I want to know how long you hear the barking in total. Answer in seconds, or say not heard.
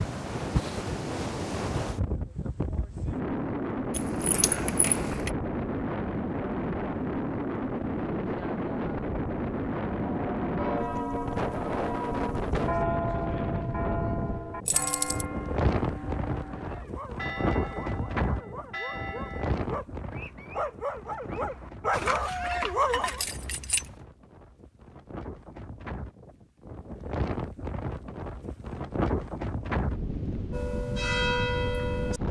7 s.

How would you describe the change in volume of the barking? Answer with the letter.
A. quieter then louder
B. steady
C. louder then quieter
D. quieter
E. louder
E.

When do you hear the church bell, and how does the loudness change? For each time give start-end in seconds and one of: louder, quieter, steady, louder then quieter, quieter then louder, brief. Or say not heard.
9.9-19.6 quieter
30.5-32.2 brief.